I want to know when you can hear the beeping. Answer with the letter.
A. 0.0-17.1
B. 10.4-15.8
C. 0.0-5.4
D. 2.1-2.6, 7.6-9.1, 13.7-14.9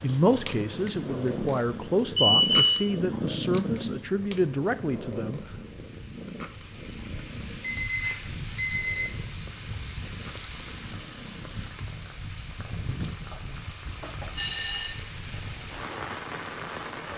D.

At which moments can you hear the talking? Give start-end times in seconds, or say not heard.
0.0-5.4.